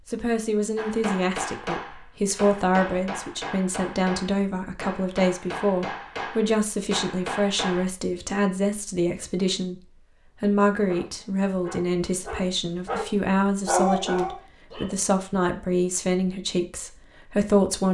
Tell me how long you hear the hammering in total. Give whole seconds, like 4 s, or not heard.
7 s.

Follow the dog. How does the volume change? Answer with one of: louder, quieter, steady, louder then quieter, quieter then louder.
louder then quieter.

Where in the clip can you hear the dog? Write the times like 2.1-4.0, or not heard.
10.8-14.9.